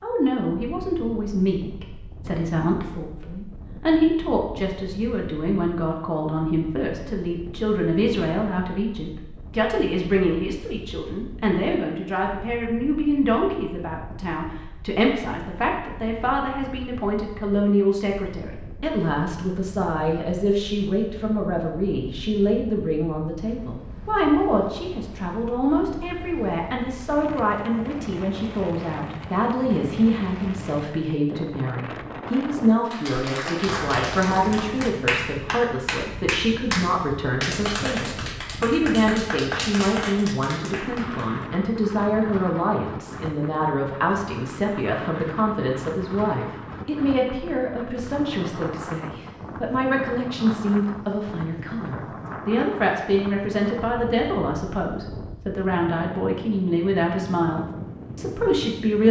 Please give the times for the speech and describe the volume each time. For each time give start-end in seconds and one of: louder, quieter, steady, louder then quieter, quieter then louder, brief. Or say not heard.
0.0-59.0 steady.